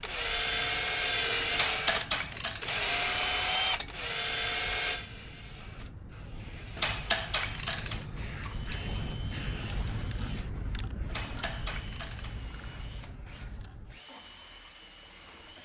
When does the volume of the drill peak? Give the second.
3 s.